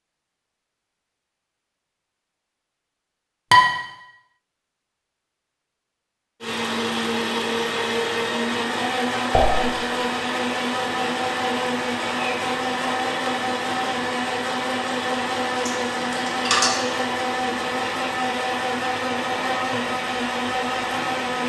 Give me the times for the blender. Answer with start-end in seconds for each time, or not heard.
6.4-21.4.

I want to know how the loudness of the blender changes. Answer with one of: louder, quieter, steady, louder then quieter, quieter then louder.
steady.